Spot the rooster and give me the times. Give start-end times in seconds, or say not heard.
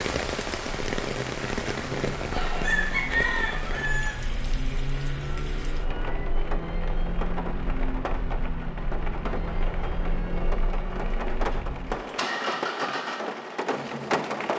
2.3-4.2.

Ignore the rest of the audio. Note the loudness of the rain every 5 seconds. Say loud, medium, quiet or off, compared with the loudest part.
loud, medium, loud.